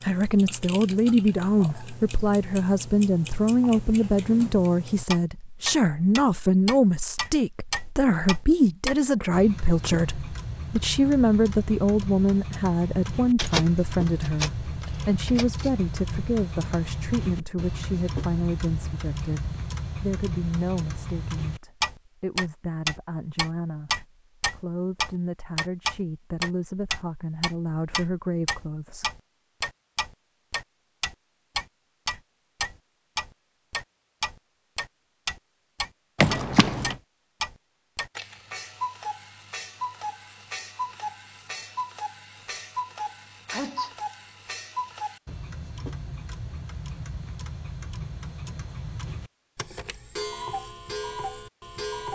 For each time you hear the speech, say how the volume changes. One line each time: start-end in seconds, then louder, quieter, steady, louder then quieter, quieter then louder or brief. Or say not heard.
0.0-29.1 quieter.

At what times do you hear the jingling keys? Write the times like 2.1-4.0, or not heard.
13.3-15.7, 36.1-37.0.